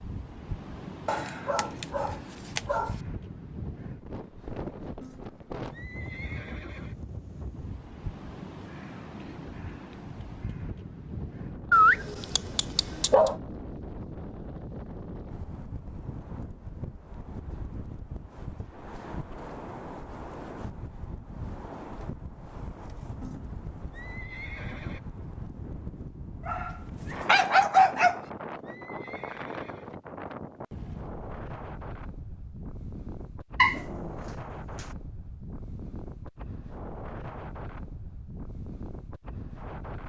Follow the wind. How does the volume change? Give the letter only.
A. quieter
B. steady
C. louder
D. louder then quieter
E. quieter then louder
B.